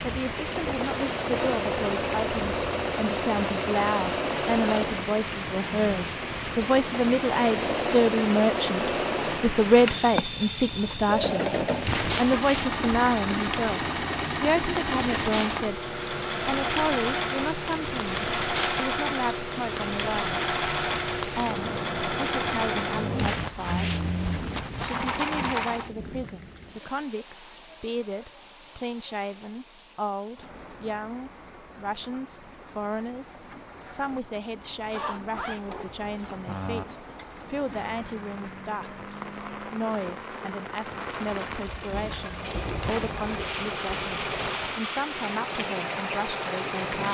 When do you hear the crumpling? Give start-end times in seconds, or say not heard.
11.8-12.8, 23.1-25.1, 42.8-44.8.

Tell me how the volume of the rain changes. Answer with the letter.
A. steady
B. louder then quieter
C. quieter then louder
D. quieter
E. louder
C.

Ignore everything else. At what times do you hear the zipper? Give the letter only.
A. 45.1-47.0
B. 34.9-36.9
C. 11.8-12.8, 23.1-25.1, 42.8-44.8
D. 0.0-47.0
B.